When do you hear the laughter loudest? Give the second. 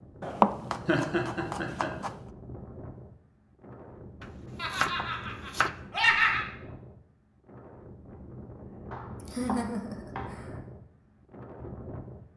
6 s.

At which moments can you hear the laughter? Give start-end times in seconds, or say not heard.
0.8-1.9, 4.5-6.5, 9.2-10.4.